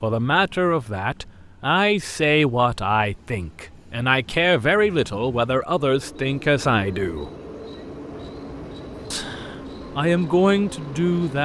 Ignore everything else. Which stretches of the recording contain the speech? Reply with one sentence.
The speech can be heard from 0.0 to 7.3 s and from 9.1 to 11.4 s.